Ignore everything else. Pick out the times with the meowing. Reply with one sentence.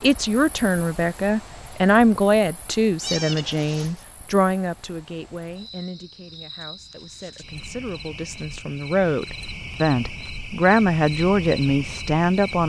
The meowing can be heard from 3.0 to 4.0 s.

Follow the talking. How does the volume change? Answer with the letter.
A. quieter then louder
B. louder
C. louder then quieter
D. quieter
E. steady
A.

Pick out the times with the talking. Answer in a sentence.
You can hear the talking from 0.0 to 12.6 s.